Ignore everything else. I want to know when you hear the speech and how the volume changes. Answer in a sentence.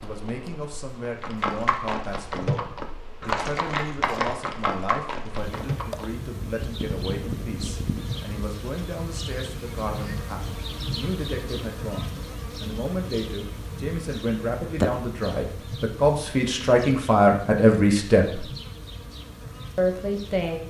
You can hear the speech from 0.0 to 18.4 s, getting louder; and briefly from 19.8 to 20.6 s.